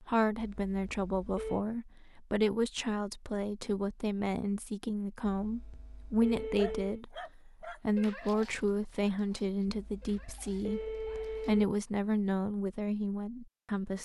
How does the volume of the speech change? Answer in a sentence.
The volume of the speech stays about the same.